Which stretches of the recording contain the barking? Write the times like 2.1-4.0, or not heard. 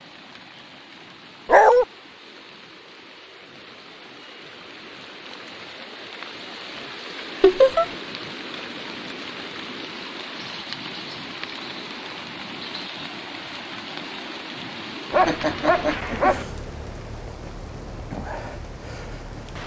1.4-1.9, 15.1-16.4.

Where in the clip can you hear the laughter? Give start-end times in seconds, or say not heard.
7.4-7.8, 15.2-16.1.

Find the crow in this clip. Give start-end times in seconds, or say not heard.
not heard.